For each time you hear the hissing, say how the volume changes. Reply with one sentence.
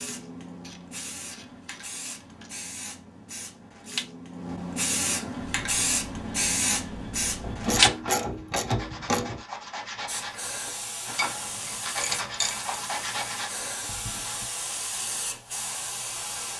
The hissing can be heard from 0.0 to 7.9 s, getting louder; and from 10.1 to 16.5 s, at a steady volume.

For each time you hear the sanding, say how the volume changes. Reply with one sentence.
You can hear the sanding from 5.5 to 14.4 s, getting louder.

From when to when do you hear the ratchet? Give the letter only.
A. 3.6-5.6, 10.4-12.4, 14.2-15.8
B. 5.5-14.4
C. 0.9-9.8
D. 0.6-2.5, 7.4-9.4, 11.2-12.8
D.